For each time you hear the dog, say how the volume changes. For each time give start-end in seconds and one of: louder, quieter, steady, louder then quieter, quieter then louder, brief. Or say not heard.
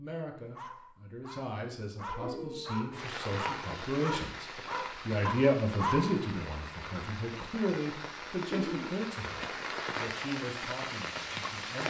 0.5-6.2 louder.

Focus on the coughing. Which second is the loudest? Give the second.
9 s.